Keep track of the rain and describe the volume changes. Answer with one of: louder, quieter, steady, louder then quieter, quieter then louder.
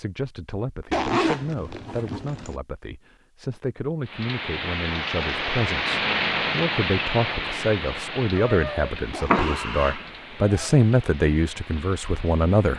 quieter.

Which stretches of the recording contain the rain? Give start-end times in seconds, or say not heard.
4.0-12.7.